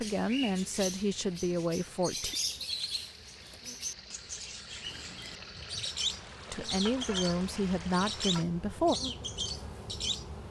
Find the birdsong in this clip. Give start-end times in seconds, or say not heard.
0.0-10.2.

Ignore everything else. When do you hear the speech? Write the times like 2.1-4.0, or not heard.
0.0-2.4, 6.5-8.9.